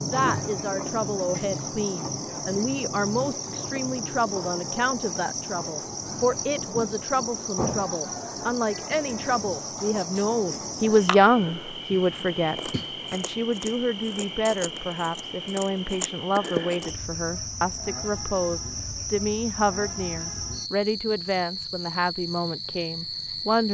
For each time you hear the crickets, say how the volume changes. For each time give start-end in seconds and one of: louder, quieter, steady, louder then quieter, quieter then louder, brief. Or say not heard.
0.0-23.6 steady.